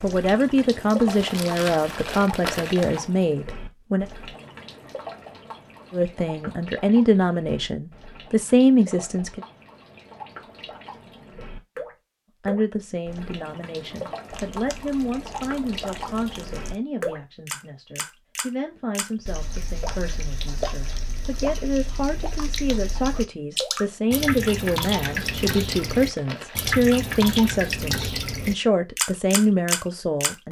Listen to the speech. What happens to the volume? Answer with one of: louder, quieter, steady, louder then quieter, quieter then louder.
quieter then louder.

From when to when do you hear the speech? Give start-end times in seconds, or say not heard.
0.0-4.0, 5.9-9.4, 12.4-30.4.